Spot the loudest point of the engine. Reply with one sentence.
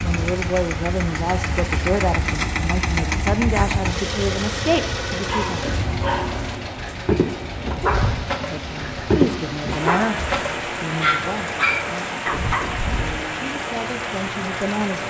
The loudest moment of the engine is at 3 seconds.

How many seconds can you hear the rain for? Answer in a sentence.
You can hear the rain for 15 seconds altogether.